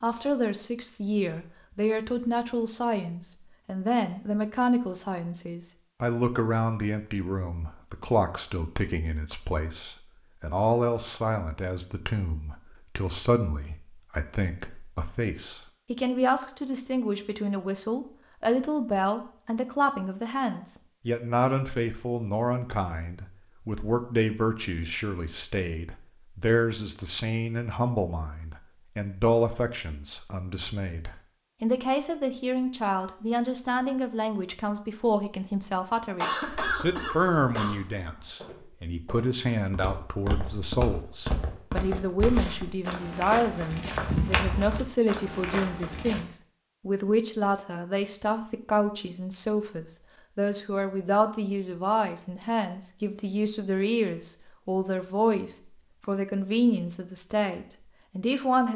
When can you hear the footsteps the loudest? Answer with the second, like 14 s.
44 s.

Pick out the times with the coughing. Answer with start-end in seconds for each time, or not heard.
36.2-37.8.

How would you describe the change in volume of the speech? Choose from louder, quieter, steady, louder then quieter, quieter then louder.
steady.